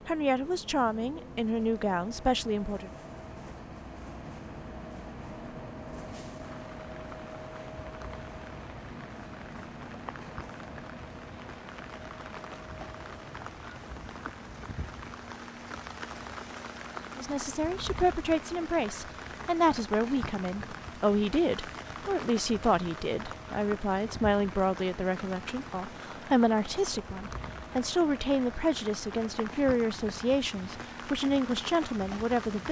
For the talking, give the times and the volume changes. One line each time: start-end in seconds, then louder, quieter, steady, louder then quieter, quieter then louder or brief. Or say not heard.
0.1-2.9 brief
17.1-32.6 steady.